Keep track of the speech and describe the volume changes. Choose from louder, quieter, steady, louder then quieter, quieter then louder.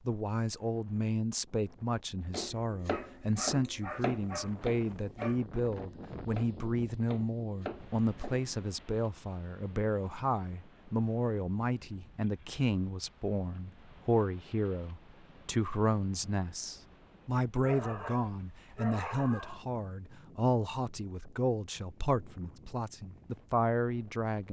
steady.